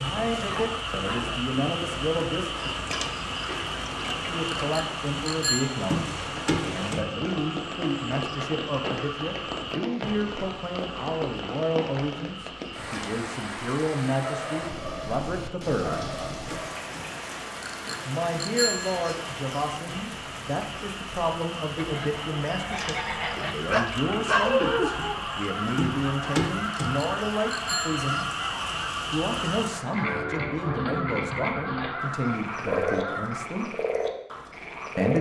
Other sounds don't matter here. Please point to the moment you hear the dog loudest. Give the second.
24 s.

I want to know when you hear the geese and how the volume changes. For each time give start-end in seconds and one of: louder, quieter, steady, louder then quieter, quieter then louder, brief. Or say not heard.
21.8-33.5 steady.